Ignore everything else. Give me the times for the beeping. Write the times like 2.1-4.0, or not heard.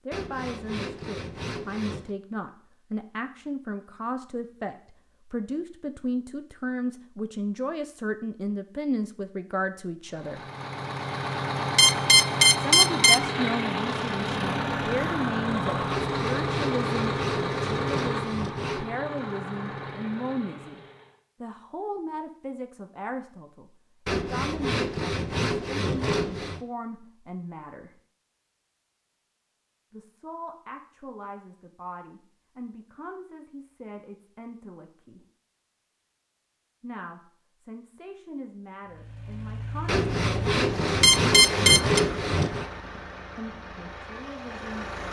11.8-13.2, 41.0-42.0.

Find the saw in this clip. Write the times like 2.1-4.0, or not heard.
0.1-2.1, 15.9-18.9, 24.1-26.6, 39.9-42.7.